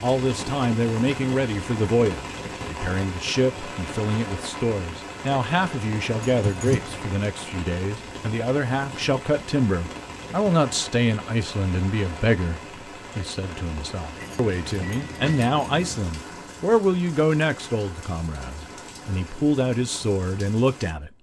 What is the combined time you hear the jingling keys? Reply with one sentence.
The jingling keys can be heard for 2 seconds in total.